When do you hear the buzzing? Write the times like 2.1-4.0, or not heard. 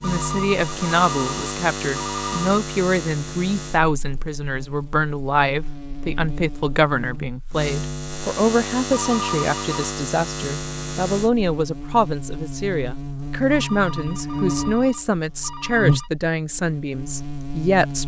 0.0-18.0.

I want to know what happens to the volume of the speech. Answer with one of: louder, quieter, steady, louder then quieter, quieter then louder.
steady.